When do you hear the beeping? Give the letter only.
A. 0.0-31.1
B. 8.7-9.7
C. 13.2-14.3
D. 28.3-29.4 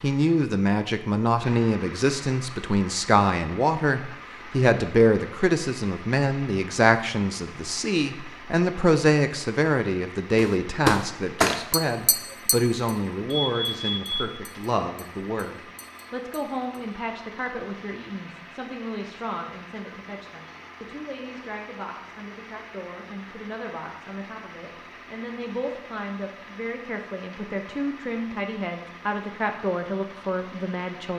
C.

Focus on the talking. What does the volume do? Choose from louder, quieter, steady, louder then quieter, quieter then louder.
quieter then louder.